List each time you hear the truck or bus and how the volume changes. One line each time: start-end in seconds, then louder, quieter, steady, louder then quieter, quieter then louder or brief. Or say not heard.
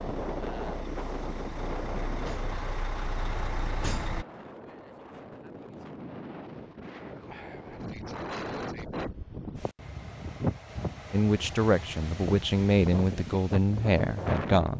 0.0-4.2 louder.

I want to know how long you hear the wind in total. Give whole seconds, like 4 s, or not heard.
15 s.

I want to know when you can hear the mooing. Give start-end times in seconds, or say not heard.
not heard.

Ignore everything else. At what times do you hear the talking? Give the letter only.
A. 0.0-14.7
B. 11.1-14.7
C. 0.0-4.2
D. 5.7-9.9
B.